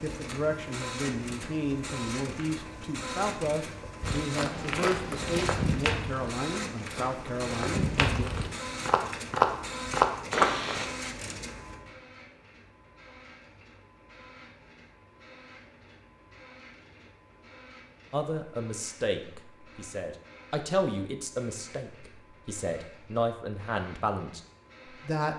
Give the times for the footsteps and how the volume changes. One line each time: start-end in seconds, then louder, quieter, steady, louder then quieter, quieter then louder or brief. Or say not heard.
4.0-10.8 louder.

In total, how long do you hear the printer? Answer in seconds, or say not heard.
25 s.